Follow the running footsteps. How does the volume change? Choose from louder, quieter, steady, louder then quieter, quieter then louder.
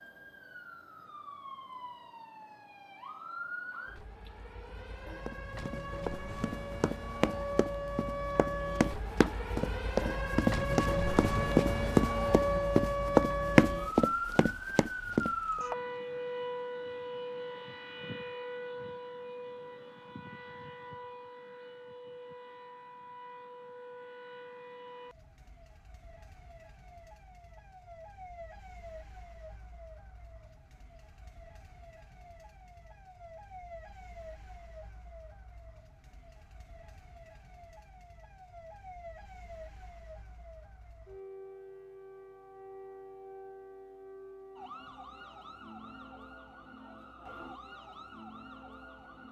louder.